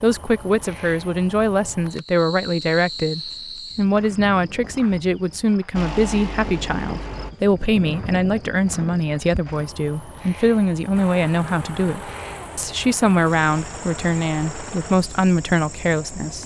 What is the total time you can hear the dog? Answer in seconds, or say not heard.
not heard.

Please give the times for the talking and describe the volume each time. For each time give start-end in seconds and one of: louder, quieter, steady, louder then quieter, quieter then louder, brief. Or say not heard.
0.0-16.4 steady.